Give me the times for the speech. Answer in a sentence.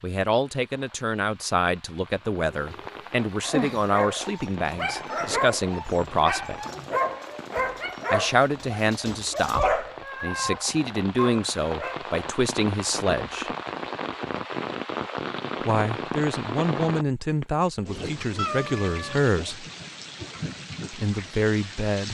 The speech can be heard from 0.0 to 6.5 s, from 8.1 to 13.5 s, from 15.7 to 19.6 s and from 20.9 to 22.1 s.